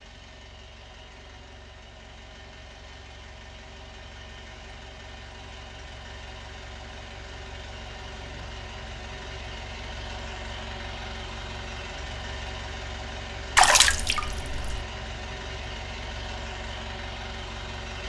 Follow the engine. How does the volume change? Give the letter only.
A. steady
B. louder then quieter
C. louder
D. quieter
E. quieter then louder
C.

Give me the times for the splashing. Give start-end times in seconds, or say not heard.
13.6-14.8.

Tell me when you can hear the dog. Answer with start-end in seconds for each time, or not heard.
not heard.